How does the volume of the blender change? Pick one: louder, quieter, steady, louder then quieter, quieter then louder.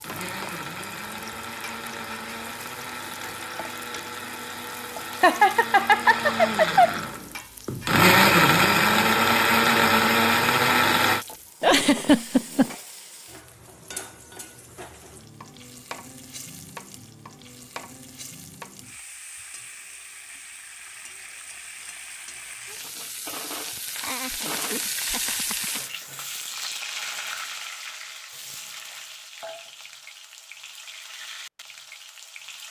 louder.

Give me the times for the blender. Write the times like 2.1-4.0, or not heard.
0.0-11.2.